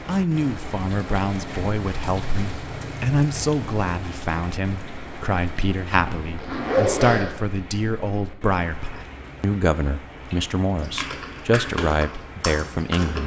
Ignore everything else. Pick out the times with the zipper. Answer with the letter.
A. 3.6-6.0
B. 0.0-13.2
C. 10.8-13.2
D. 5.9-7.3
D.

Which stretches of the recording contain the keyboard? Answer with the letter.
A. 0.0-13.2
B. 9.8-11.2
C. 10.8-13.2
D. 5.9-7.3
C.